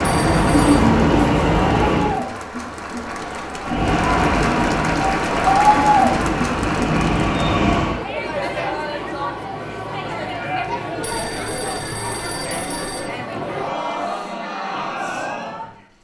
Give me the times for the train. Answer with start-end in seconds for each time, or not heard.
0.0-2.2, 3.6-8.1.